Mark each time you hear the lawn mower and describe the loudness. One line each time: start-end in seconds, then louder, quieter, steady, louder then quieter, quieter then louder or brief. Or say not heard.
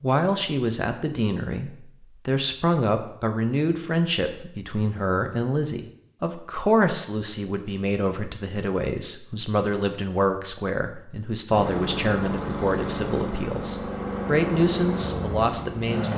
11.5-16.1 steady.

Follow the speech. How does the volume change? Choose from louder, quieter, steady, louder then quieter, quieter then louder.
steady.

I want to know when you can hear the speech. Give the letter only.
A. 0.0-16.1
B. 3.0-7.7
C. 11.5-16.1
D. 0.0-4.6
A.